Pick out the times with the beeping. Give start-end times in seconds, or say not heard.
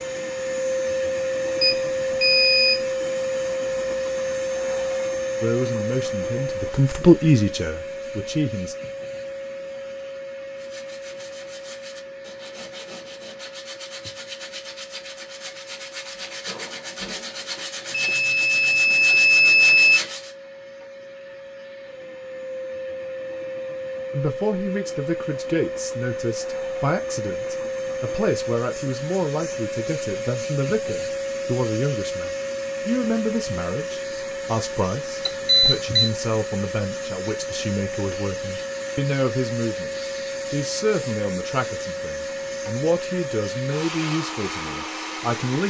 1.6-2.9, 17.9-20.0, 35.2-36.1.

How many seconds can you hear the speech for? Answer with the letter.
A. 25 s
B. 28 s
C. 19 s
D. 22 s
A.